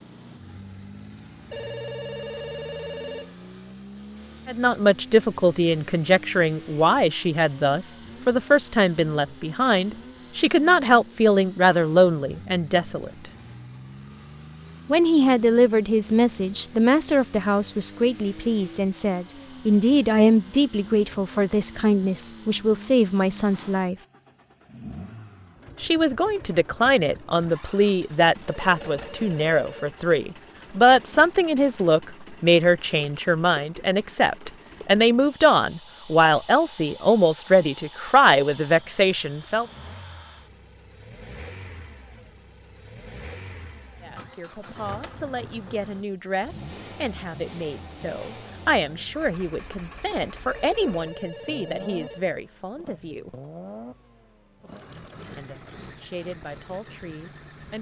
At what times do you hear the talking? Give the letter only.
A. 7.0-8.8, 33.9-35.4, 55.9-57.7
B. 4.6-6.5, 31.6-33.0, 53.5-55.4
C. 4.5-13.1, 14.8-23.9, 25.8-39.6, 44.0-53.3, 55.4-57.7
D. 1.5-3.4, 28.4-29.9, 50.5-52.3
C.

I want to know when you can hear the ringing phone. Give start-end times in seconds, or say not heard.
1.5-3.4, 28.4-29.9, 50.5-52.3.